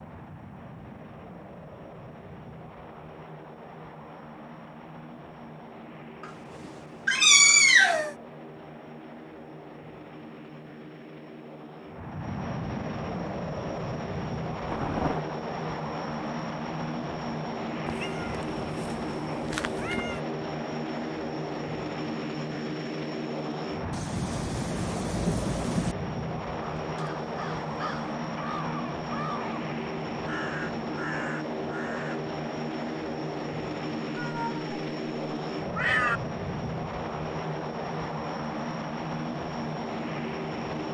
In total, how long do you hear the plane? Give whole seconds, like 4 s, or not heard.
41 s.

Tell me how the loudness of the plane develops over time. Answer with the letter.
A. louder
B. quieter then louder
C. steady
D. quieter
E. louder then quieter
A.